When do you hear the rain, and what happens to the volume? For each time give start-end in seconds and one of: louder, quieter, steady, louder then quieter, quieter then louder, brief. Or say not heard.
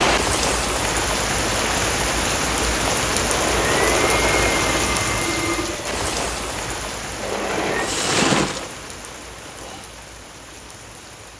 0.0-11.3 quieter.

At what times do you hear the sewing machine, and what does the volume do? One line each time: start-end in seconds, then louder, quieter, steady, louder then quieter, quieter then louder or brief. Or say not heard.
3.1-9.8 quieter then louder.